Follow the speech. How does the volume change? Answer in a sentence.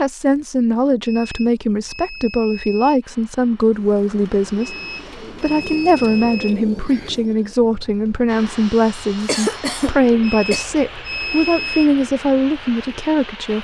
The loudness of the speech stays about the same.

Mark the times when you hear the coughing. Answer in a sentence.
You can hear the coughing from 9.2 to 10.7 s.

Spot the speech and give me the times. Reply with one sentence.
The speech can be heard from 0.0 to 13.5 s.